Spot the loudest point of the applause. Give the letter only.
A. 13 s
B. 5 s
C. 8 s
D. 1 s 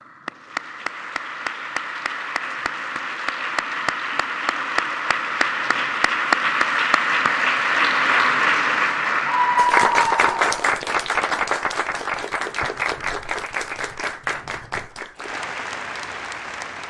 C.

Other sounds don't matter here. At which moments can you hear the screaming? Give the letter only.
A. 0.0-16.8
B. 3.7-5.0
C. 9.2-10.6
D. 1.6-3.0
C.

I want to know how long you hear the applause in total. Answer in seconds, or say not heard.
17 s.